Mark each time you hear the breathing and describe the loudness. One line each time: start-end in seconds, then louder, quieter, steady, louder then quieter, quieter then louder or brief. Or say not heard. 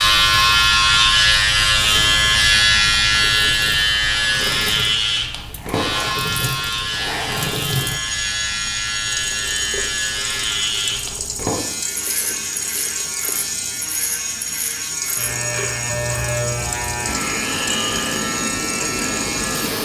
not heard.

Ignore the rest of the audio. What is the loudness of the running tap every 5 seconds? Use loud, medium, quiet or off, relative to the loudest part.
medium, loud, loud, loud.